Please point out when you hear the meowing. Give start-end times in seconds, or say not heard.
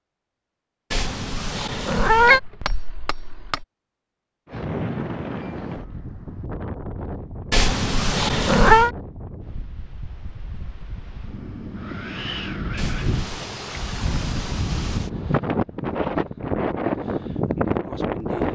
0.9-2.4, 7.5-8.9, 12.8-13.5.